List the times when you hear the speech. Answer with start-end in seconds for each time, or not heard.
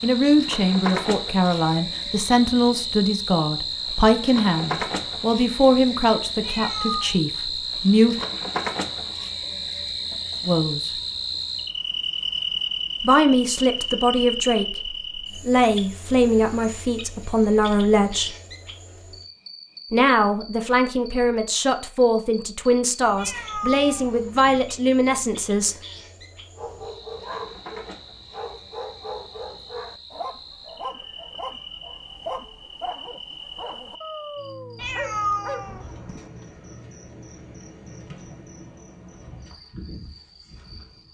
0.0-8.2, 10.4-10.9, 13.0-18.4, 19.9-25.8.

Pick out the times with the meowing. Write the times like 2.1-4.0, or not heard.
6.4-7.2, 23.1-24.7, 34.8-36.3.